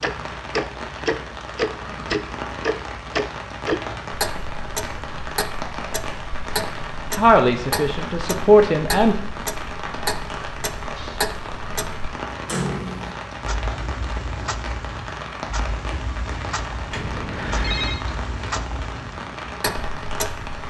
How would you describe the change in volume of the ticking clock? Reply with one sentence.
The loudness of the ticking clock goes down.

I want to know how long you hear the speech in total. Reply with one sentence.
You can hear the speech for 2 seconds altogether.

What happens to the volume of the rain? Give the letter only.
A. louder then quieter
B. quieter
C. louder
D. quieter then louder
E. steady
E.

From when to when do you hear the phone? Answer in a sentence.
You can hear the phone from 16.9 to 18.1 s.